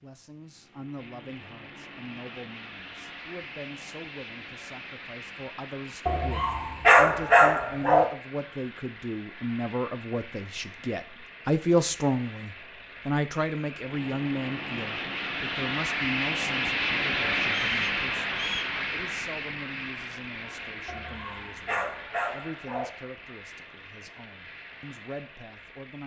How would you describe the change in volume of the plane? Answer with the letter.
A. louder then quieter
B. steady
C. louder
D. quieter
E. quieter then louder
A.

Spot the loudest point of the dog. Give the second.
7 s.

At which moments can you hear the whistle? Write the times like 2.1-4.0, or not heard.
17.4-18.8.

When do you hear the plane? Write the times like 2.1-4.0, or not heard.
0.0-26.0.